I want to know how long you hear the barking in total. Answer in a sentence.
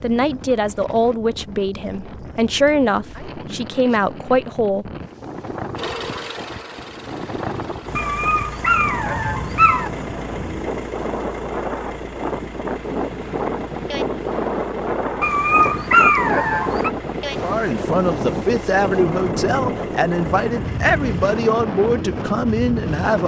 You can hear the barking for 4 seconds altogether.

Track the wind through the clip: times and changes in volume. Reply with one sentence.
The wind can be heard from 0.0 to 23.2 s, getting louder.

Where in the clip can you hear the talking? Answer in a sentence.
You can hear the talking from 0.0 to 4.9 s and from 17.4 to 23.2 s.